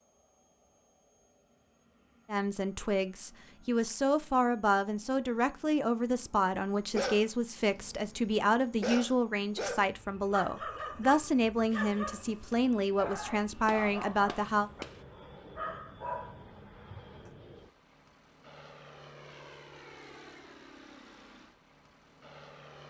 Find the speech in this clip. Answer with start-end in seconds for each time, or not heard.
2.3-14.7.